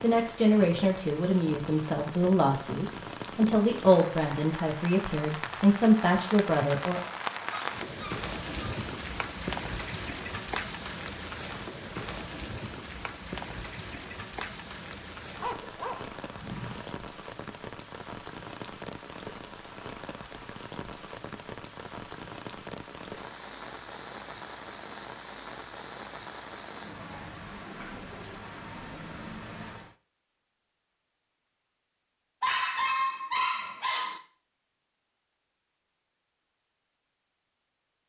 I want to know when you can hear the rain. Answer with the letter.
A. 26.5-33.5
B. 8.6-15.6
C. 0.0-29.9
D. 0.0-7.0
C.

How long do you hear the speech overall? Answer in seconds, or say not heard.
7 s.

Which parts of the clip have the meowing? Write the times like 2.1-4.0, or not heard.
not heard.